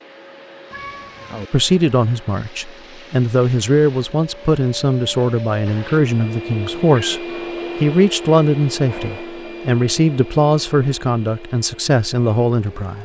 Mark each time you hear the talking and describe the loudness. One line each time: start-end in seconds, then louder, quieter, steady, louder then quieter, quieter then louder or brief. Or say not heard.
1.5-12.9 steady.